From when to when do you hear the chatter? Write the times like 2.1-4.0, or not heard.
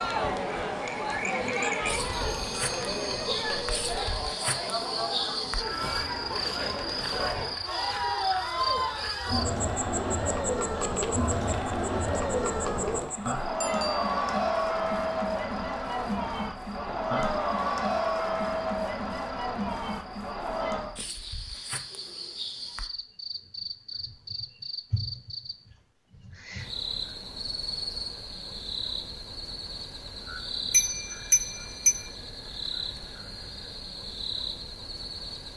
0.0-20.9.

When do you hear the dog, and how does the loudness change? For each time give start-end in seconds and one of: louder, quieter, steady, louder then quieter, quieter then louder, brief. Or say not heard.
not heard.